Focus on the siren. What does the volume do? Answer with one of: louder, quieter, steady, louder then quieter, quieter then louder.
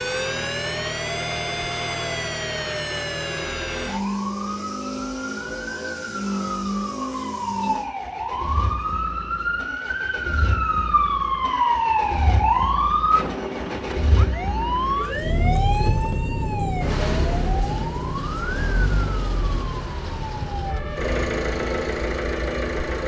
louder then quieter.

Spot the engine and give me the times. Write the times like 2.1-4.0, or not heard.
0.0-23.0.